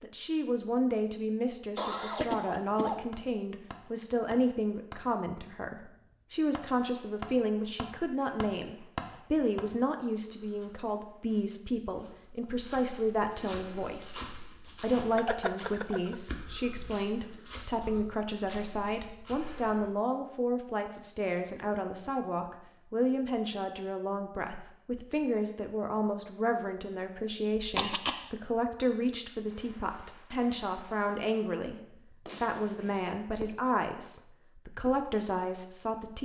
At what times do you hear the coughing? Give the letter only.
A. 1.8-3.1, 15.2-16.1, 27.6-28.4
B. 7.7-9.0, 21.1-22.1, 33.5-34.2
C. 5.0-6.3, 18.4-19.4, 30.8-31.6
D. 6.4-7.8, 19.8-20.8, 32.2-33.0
A.